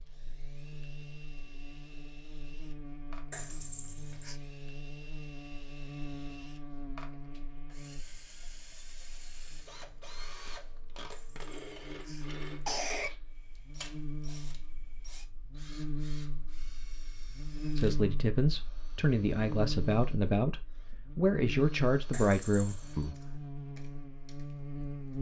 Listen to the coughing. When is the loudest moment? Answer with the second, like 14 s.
13 s.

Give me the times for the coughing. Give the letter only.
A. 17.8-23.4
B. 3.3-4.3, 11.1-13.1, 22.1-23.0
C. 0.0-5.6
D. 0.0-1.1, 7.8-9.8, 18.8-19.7
B.